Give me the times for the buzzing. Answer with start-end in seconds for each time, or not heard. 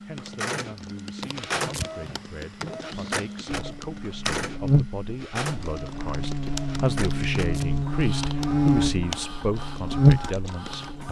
3.5-11.0.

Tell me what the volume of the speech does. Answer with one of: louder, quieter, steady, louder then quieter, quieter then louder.
louder.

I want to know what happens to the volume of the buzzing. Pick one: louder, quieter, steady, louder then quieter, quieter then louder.
quieter then louder.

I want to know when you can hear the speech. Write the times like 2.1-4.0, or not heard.
0.1-11.0.